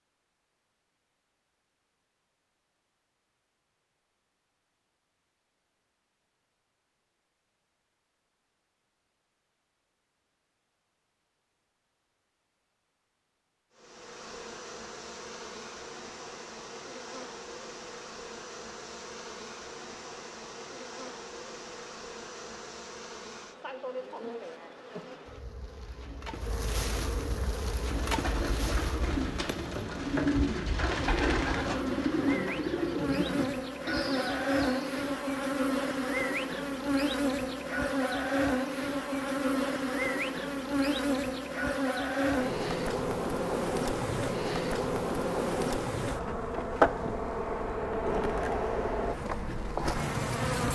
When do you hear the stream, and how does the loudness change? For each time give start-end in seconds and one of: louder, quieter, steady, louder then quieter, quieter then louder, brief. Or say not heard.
not heard.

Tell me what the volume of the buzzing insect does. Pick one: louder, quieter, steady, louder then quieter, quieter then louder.
louder.